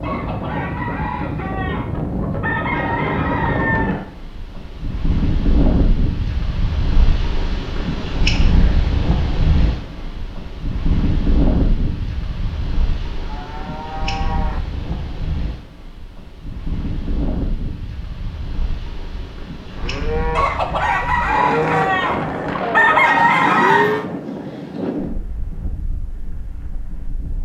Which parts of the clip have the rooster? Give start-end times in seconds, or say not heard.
0.0-4.0, 20.4-24.0.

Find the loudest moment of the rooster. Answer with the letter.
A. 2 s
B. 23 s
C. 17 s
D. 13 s
B.